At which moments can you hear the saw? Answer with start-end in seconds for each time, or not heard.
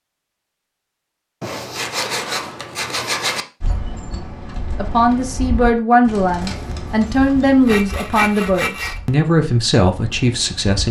1.4-3.5, 6.5-9.0.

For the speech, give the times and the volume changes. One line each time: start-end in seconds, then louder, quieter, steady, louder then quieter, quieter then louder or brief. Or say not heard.
4.8-10.8 steady.